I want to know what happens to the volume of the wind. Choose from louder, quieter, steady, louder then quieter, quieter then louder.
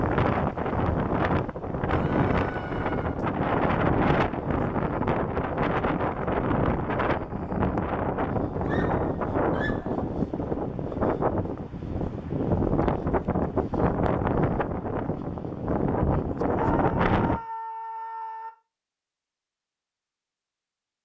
steady.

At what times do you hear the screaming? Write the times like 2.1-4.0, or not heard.
1.9-3.2, 8.7-10.1, 16.6-18.5.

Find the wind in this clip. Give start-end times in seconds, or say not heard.
0.0-17.4.